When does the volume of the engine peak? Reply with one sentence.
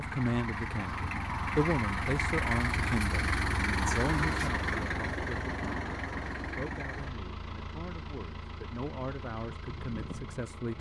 The loudest moment of the engine is at 4 seconds.